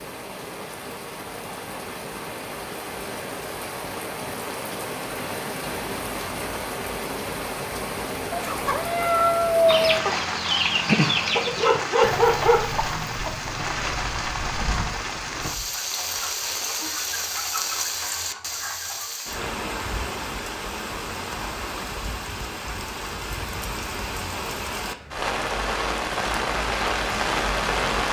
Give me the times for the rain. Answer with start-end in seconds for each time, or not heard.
0.0-28.0.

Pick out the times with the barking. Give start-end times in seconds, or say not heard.
11.1-12.6.